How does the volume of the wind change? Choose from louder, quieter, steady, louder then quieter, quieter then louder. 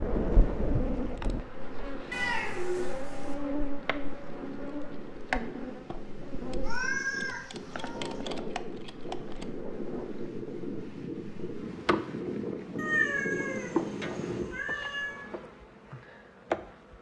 louder.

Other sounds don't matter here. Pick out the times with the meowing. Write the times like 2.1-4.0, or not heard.
2.1-3.4, 6.6-8.2, 12.8-15.2.